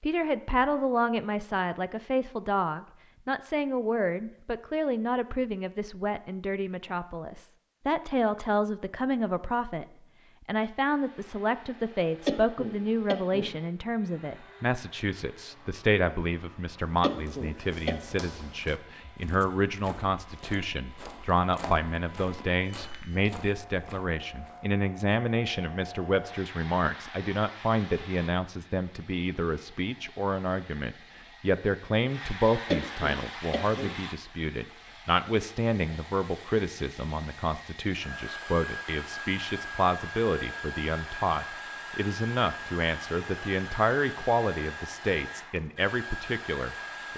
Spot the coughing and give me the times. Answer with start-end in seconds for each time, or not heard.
12.2-13.5, 17.0-17.9, 32.7-33.9.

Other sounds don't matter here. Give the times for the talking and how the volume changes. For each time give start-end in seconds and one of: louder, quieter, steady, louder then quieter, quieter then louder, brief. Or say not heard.
0.0-9.8 quieter then louder
10.4-47.1 steady.